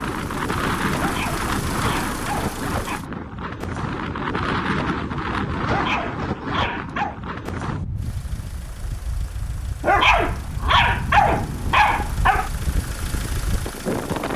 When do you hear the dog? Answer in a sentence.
You can hear the dog from 0.9 to 3.0 s, from 5.7 to 7.2 s and from 9.8 to 12.5 s.